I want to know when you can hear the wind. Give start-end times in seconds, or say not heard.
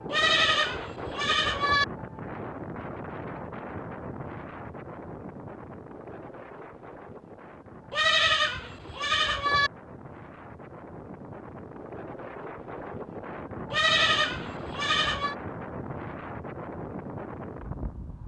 0.0-18.2.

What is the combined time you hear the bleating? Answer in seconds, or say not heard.
5 s.